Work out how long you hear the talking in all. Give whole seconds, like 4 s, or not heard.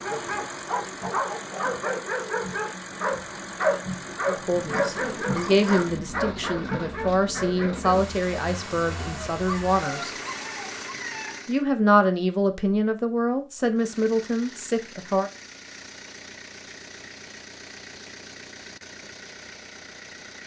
10 s.